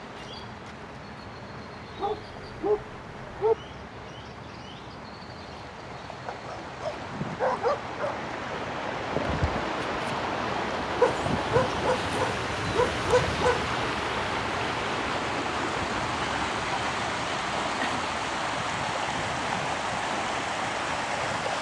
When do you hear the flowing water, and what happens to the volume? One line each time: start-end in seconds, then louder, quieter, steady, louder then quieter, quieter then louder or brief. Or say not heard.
0.0-21.5 louder.